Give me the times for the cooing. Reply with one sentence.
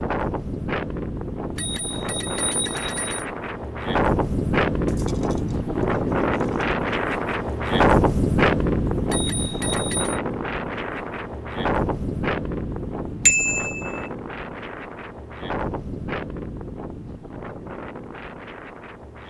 You can hear the cooing from 4.8 to 6.8 s.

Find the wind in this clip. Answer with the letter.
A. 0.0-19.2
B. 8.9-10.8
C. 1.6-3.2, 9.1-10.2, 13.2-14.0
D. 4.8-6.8
A.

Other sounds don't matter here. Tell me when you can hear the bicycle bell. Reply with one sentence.
The bicycle bell can be heard from 1.6 to 3.2 s, from 9.1 to 10.2 s and from 13.2 to 14.0 s.